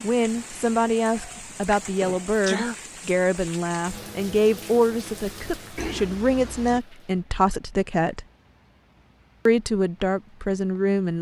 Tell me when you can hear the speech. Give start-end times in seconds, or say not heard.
0.0-8.2, 9.4-11.1.